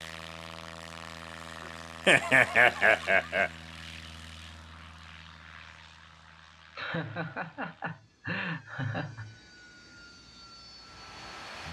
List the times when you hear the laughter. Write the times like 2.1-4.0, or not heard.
2.0-3.5, 6.8-9.3.